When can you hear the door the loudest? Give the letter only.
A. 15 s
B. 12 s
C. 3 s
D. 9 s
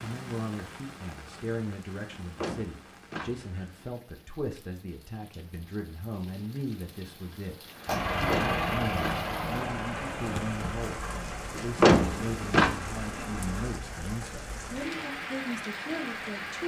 B.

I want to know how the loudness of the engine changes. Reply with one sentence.
The volume of the engine goes down.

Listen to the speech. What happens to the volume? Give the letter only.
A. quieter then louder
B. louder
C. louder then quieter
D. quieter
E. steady
E.